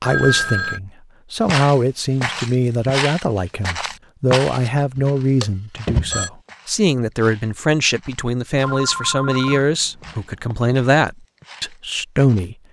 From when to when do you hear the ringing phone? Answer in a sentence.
The ringing phone can be heard from 0.0 to 0.8 s, from 5.0 to 6.3 s and from 8.6 to 10.6 s.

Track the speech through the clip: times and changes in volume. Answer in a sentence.
You can hear the speech from 0.0 to 12.6 s, at a steady volume.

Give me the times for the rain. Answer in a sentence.
The rain can't be heard in this clip.